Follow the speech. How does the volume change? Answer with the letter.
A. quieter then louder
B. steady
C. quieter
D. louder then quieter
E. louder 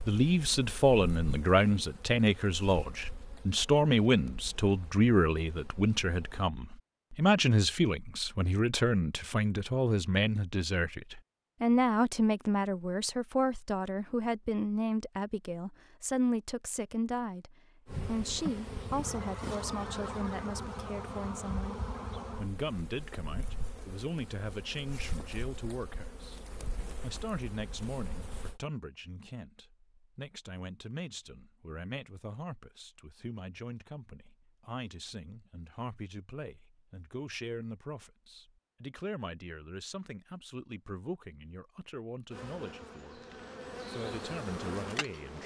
C.